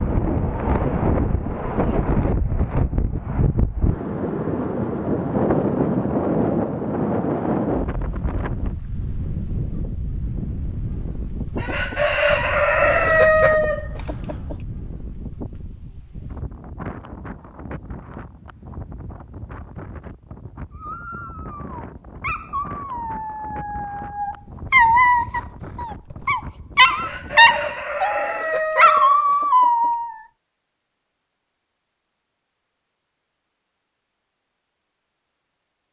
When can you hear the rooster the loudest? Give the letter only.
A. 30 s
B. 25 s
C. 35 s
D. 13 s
D.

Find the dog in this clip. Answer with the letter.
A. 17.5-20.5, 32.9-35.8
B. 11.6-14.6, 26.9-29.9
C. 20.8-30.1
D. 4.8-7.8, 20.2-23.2
C.